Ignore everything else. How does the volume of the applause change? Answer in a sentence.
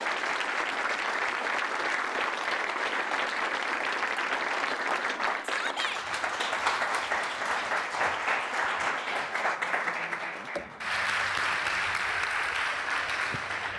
The loudness of the applause stays about the same.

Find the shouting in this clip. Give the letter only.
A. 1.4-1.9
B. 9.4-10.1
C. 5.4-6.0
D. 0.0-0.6
C.